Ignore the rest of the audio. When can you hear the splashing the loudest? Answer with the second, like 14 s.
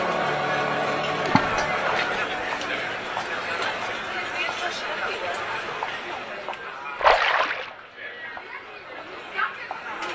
7 s.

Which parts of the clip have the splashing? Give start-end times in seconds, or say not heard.
1.2-2.2, 7.0-7.7.